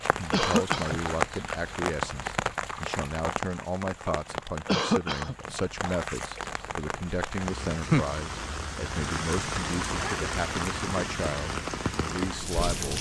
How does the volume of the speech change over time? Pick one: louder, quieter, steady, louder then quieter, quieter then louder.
steady.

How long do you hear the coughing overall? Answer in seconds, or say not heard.
2 s.